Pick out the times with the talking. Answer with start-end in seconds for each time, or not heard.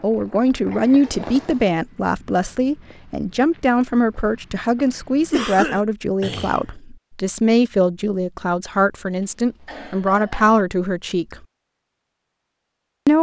0.0-11.4.